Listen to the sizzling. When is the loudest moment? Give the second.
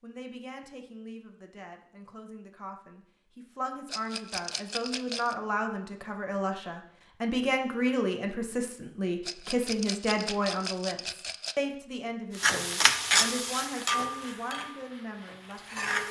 13 s.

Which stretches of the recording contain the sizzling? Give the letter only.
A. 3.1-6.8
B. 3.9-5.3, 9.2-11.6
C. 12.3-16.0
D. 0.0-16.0
C.